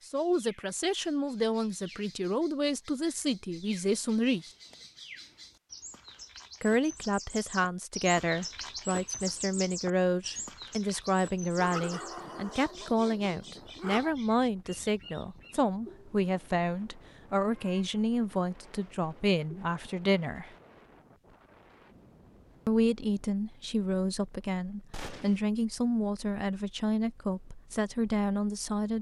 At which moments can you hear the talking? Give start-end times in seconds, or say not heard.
0.1-4.5, 6.6-20.5, 22.6-28.9.